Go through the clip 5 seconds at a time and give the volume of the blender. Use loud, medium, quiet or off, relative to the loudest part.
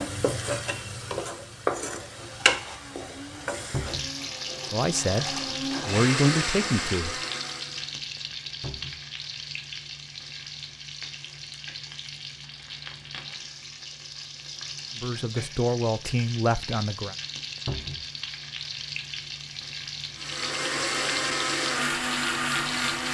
quiet, loud, off, off, loud.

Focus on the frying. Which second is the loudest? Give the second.
2 s.